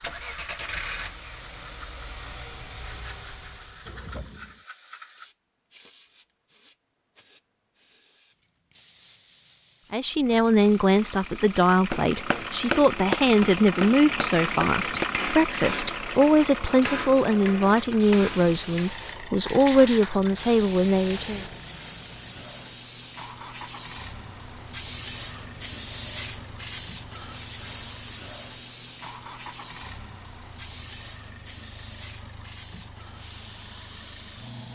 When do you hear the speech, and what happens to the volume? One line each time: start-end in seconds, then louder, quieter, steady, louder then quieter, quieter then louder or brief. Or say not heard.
9.9-21.4 steady.